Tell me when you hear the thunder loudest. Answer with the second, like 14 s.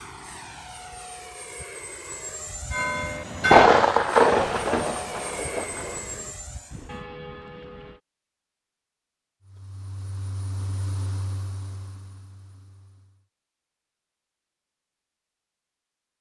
4 s.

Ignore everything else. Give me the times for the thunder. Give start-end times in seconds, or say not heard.
3.4-6.0.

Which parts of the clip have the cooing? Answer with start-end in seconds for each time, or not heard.
not heard.